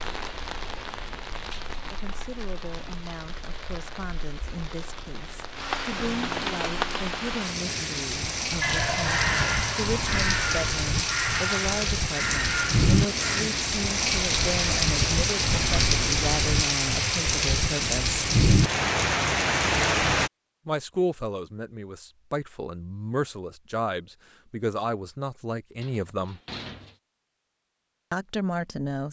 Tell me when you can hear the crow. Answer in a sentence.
You can hear the crow from 8.6 to 13.4 s.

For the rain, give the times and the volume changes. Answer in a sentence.
The rain can be heard from 0.0 to 20.3 s, getting louder.